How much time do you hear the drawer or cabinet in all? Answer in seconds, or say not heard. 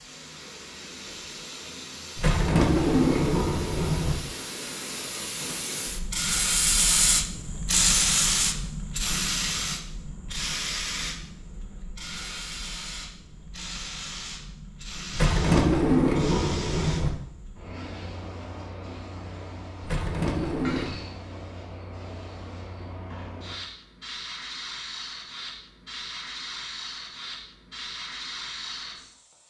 5 s.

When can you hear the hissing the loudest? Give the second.
8 s.